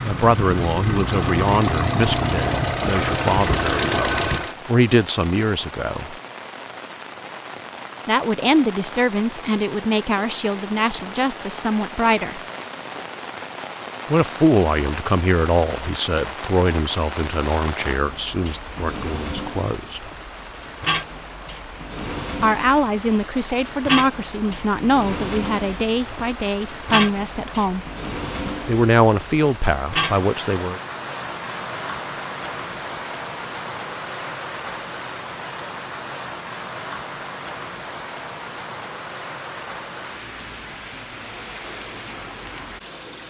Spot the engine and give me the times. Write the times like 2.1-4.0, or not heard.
0.0-4.5.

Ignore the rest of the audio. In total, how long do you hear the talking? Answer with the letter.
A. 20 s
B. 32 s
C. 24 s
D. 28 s
C.